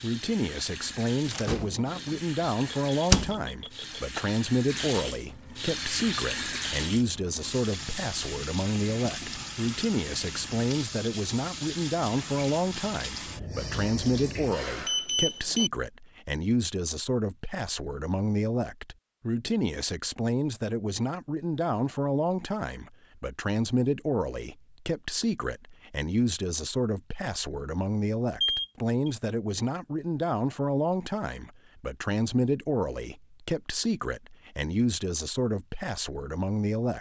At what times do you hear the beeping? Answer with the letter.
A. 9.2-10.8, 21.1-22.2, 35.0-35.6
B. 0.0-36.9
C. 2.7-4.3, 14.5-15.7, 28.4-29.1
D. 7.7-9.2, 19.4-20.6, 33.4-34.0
C.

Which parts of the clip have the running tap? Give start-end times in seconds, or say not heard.
0.0-14.6.